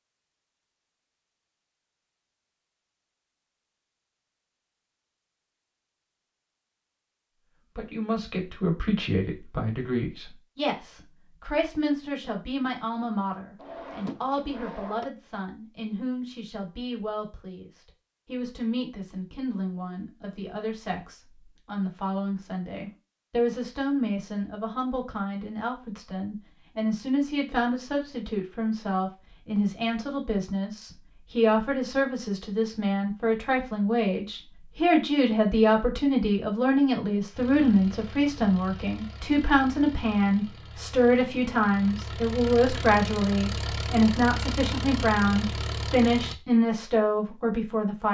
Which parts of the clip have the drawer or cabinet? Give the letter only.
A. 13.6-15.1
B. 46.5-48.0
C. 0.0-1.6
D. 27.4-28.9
A.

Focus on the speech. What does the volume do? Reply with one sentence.
The loudness of the speech goes up.